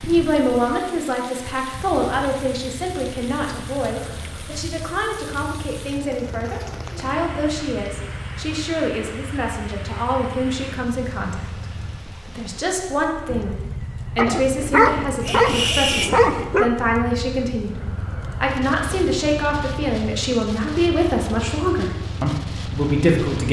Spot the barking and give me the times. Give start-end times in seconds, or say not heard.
14.2-16.7.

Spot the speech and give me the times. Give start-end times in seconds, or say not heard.
0.1-17.8, 18.4-23.4.